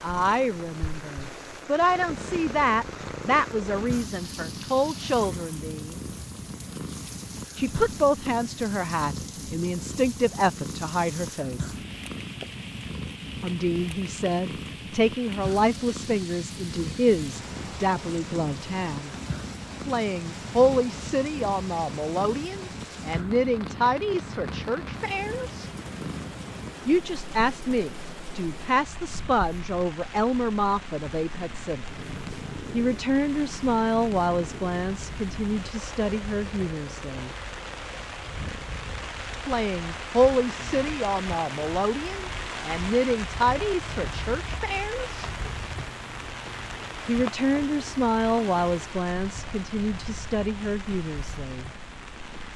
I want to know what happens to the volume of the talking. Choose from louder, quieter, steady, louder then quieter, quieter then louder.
steady.